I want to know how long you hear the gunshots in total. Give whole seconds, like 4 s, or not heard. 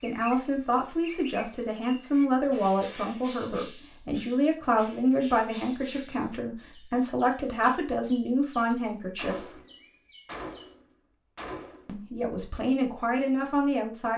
3 s.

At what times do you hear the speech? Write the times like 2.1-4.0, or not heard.
0.0-9.6, 11.8-14.1.